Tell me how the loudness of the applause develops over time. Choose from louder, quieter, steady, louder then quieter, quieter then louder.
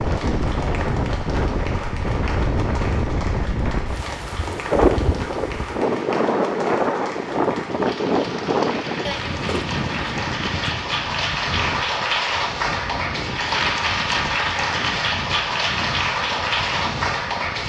louder.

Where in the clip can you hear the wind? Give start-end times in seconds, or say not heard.
0.0-17.6.